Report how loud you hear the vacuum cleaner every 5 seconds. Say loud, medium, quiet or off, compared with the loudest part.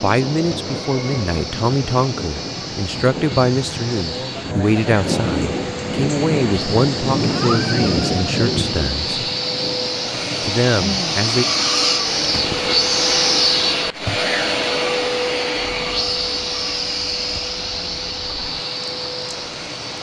quiet, medium, loud, medium.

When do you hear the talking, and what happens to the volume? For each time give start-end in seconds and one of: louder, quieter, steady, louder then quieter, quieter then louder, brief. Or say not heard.
0.0-9.1 steady
10.4-11.4 brief.